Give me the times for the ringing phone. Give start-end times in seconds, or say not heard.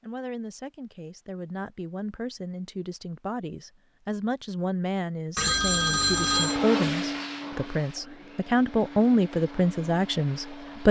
5.3-6.6.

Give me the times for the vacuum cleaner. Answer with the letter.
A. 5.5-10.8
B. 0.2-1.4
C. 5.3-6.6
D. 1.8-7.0
A.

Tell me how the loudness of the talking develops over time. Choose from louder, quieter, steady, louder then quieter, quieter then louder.
louder.